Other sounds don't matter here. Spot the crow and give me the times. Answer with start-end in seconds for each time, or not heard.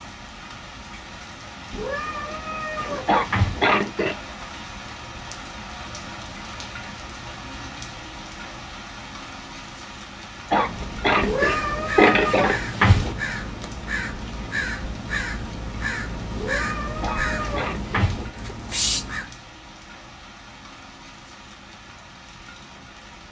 10.5-19.4.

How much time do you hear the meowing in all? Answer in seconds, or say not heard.
6 s.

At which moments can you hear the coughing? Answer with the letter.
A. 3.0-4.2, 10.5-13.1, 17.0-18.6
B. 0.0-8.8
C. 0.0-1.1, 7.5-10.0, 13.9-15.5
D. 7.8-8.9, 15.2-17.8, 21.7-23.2
A.